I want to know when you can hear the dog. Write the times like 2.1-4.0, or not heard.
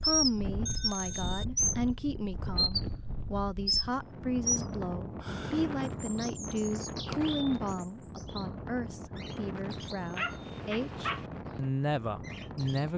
10.2-11.3.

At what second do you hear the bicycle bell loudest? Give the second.
1 s.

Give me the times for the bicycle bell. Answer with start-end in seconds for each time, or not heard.
0.7-1.4, 9.8-10.6.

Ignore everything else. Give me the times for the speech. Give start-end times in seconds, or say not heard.
0.0-12.9.